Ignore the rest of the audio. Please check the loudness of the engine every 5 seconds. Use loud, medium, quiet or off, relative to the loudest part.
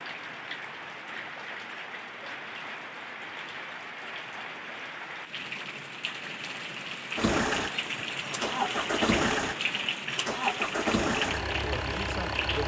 off, loud, loud.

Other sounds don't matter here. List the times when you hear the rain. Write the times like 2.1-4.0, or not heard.
0.0-12.6.